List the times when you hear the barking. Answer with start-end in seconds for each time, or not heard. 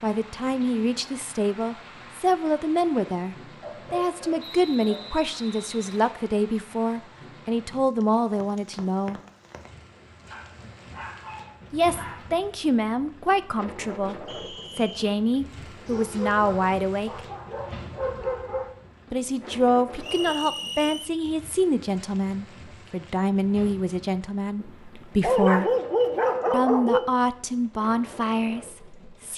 3.6-5.2, 10.3-12.2, 15.8-18.7, 24.6-27.1.